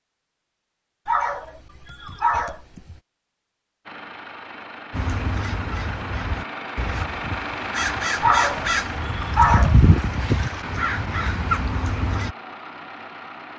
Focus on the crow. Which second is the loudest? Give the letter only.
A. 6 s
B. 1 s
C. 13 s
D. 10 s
D.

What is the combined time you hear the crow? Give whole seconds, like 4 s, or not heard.
7 s.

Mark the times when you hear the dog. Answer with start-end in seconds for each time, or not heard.
1.1-3.0, 8.2-9.8.